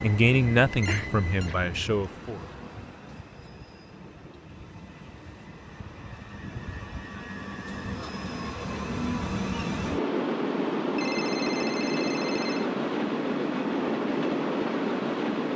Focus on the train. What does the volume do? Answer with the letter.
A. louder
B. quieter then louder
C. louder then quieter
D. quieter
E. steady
B.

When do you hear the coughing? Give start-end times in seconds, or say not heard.
0.8-1.8.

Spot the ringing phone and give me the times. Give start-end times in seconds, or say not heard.
0.8-1.5, 10.9-12.7.